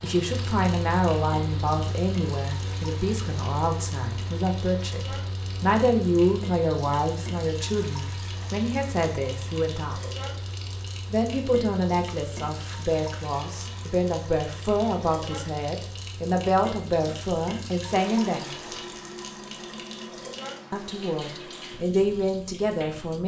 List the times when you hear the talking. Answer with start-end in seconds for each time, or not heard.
0.0-10.0, 11.1-18.8, 20.7-23.2.